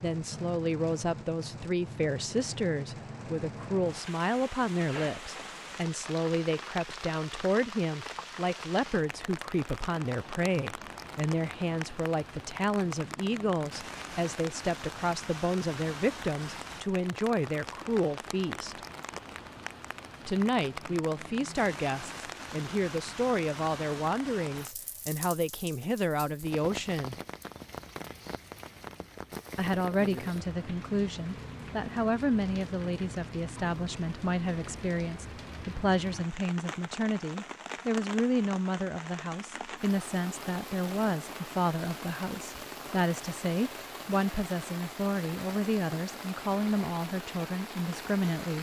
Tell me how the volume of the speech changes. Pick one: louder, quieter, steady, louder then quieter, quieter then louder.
steady.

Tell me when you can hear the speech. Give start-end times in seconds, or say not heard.
0.0-18.8, 20.2-27.1, 29.6-48.5.